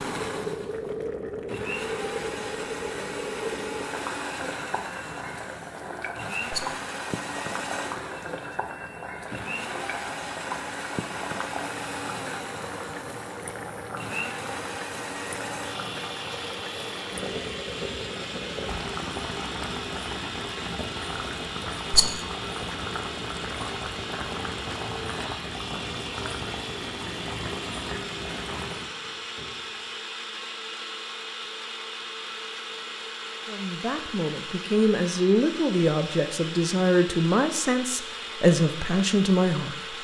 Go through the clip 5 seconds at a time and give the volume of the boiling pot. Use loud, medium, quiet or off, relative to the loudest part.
loud, loud, loud, loud, loud, loud, off, off.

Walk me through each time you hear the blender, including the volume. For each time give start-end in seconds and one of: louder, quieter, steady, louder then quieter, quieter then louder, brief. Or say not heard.
0.0-39.9 steady.